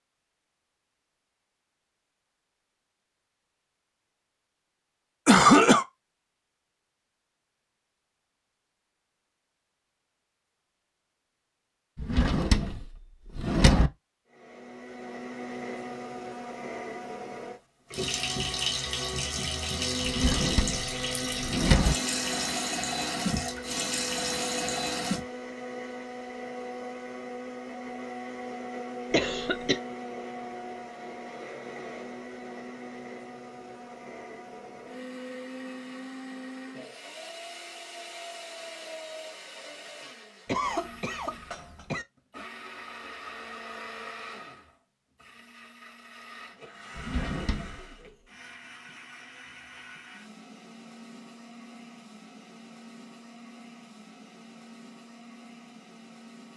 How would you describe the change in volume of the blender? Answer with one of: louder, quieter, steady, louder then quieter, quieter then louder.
quieter.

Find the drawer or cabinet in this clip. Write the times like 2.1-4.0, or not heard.
11.9-13.9, 20.1-21.9, 47.0-48.0.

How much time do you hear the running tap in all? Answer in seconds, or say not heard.
7 s.